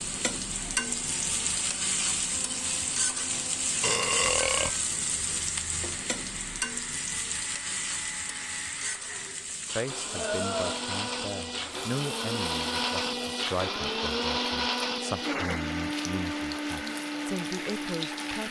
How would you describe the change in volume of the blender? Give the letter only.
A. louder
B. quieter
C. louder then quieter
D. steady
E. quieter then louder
A.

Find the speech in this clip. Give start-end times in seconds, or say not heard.
9.6-18.4.